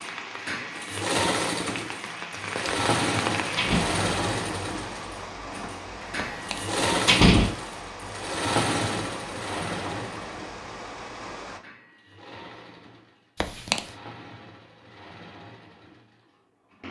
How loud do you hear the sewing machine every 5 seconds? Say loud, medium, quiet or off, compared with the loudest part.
loud, loud, quiet, quiet.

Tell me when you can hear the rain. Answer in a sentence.
The rain can be heard from 0.0 to 11.6 s.